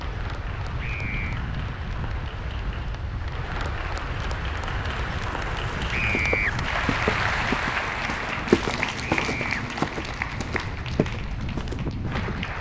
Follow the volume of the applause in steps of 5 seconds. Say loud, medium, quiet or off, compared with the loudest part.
medium, loud, medium.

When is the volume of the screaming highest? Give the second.
6 s.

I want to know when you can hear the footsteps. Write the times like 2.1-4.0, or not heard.
6.1-12.4.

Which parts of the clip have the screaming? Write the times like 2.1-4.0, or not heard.
0.8-1.4, 5.9-6.5, 9.1-9.6.